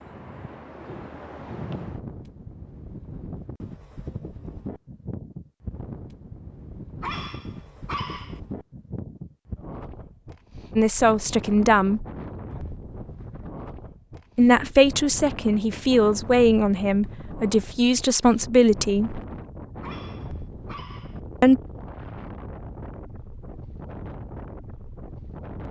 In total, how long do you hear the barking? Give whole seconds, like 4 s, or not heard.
3 s.